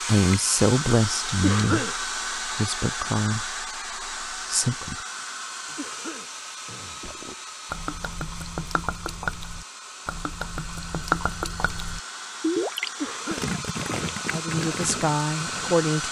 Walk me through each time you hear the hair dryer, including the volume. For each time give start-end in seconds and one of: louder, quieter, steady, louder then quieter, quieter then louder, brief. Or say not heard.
0.0-16.0 quieter then louder.